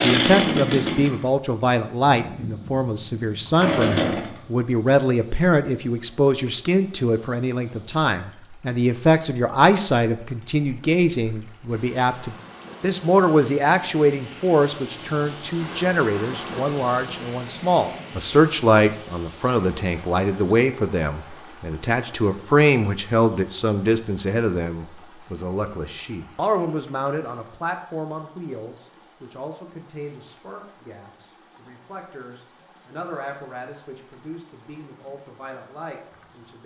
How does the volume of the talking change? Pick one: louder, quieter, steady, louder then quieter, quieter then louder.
quieter.